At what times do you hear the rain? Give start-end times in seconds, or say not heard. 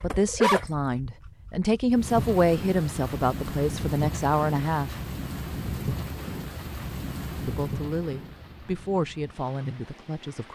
1.9-10.5.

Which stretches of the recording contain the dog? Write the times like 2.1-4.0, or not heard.
0.0-1.9.